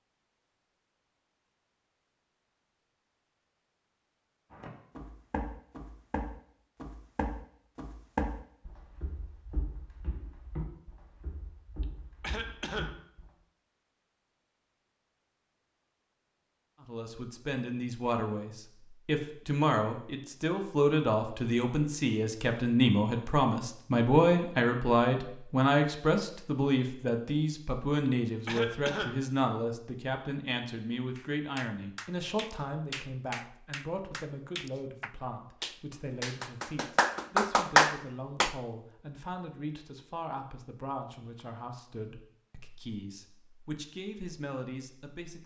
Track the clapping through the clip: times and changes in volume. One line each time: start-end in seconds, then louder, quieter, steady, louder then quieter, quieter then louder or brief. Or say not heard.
31.1-38.5 louder.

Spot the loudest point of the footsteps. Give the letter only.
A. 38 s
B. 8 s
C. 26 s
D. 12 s
B.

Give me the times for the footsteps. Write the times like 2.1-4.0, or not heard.
4.5-13.3.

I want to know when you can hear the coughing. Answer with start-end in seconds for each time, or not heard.
11.8-13.0, 28.1-29.2.